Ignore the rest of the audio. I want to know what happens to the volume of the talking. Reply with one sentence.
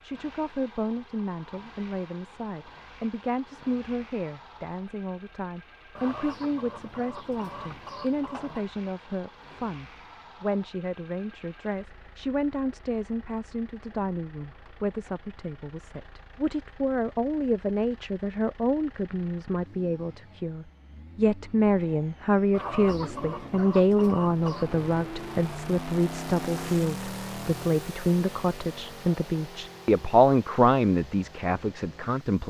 The volume of the talking goes up.